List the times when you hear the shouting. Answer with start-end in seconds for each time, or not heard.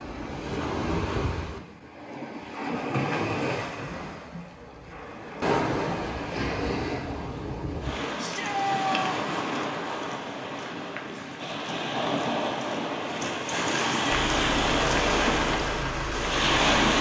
8.2-9.2.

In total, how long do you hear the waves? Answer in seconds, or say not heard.
17 s.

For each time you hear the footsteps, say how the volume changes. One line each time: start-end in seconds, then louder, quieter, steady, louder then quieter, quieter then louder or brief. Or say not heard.
not heard.